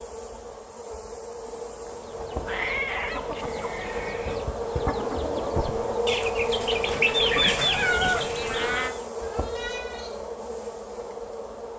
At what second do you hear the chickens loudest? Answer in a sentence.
The loudest moment of the chickens is at 7 seconds.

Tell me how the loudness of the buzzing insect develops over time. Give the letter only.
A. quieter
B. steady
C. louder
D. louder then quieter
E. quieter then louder
D.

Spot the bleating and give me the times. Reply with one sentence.
The bleating can be heard from 3.4 to 4.3 s and from 9.2 to 10.2 s.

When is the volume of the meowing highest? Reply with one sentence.
The loudest moment of the meowing is at 8 seconds.